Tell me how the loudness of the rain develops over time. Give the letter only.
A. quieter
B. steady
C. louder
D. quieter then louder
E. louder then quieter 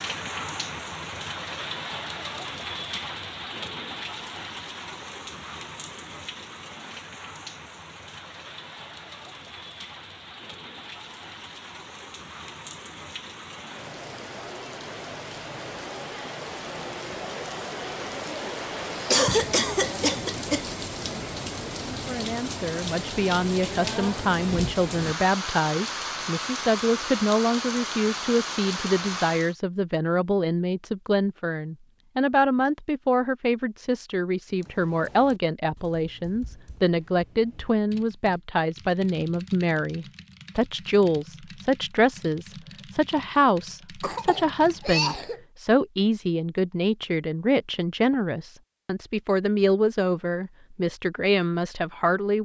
D.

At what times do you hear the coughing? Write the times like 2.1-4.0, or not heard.
19.1-20.6, 44.0-45.4.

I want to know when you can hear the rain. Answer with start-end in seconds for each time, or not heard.
0.0-29.6.